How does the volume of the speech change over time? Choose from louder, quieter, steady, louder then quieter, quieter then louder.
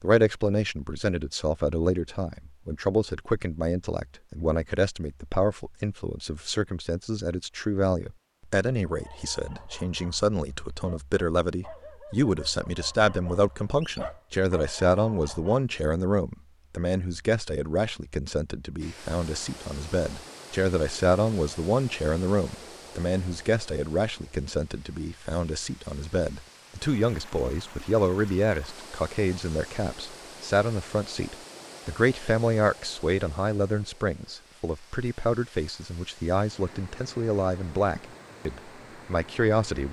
steady.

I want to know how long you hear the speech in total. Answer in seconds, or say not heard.
40 s.